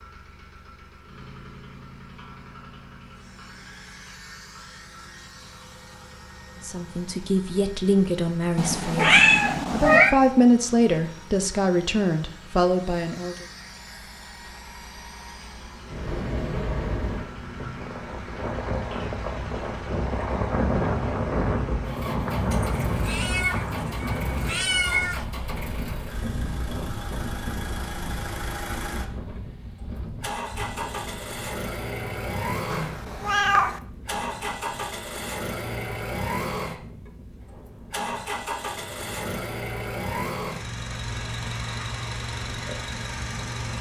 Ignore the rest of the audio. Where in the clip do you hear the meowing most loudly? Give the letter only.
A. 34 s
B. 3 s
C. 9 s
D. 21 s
C.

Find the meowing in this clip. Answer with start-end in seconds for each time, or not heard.
8.6-10.2, 22.5-25.2, 32.7-33.8.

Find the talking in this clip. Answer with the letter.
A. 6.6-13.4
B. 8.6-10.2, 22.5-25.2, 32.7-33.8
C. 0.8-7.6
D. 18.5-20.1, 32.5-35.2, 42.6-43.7
A.